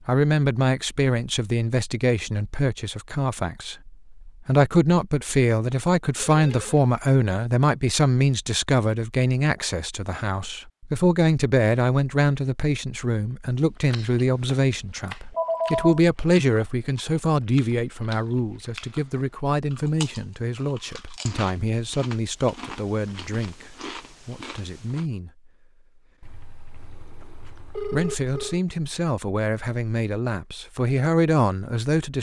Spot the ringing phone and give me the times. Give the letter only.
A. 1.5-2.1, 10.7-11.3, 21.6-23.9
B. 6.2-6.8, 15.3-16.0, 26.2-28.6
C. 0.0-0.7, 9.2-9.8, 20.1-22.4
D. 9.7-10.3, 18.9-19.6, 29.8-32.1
B.